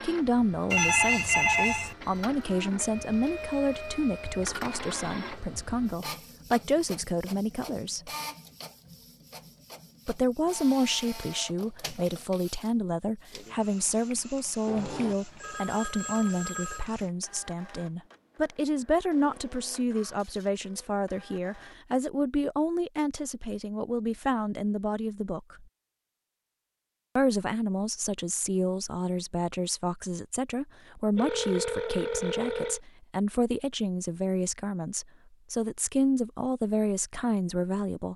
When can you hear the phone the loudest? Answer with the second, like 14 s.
1 s.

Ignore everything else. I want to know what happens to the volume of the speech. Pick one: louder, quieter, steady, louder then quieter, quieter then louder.
steady.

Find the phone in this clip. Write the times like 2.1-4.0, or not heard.
0.7-1.9, 14.7-16.9, 31.1-32.8.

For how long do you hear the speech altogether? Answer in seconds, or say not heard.
35 s.